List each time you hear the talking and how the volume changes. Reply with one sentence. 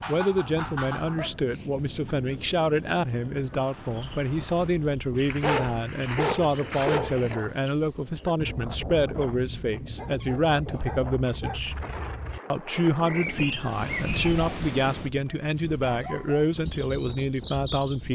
The talking can be heard from 0.1 to 11.8 s, at a steady volume; and from 12.5 to 18.0 s, at a steady volume.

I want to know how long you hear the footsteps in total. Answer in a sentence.
You can hear the footsteps for 2 seconds altogether.